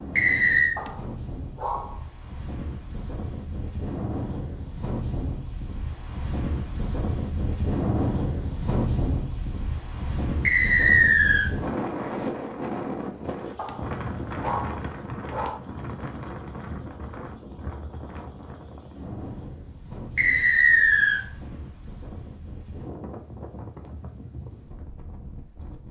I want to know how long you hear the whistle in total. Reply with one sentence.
The whistle can be heard for 3 seconds in total.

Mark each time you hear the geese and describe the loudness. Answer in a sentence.
The geese can't be heard in this clip.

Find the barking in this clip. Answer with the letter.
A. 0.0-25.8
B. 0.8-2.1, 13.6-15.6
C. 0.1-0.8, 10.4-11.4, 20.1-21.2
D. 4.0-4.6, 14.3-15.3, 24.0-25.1
B.